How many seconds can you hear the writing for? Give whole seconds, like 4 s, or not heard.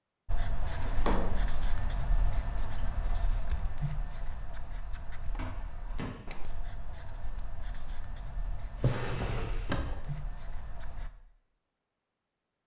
11 s.